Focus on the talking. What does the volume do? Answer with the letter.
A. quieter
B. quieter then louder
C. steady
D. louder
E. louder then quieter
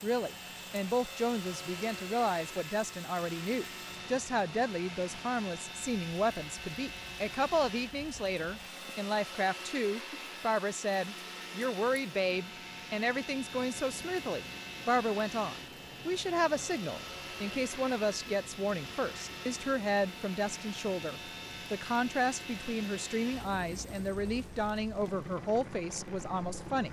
C.